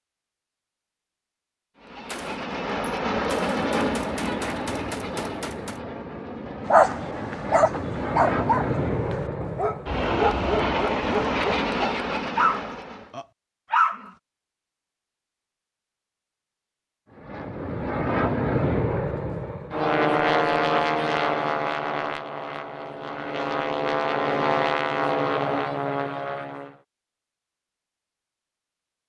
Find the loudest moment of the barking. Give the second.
7 s.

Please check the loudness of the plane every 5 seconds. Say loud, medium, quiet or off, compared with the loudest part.
loud, medium, loud, loud, loud, loud.